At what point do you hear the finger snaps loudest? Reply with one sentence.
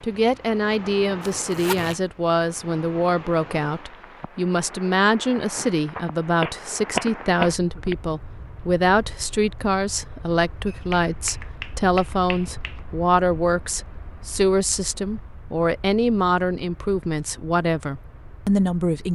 The volume of the finger snaps peaks at 7 seconds.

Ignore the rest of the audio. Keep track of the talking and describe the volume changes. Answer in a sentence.
The volume of the talking stays about the same.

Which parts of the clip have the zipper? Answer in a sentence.
The zipper can be heard from 1.2 to 1.9 s.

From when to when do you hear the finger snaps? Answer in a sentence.
You can hear the finger snaps from 6.0 to 8.0 s and from 10.7 to 12.8 s.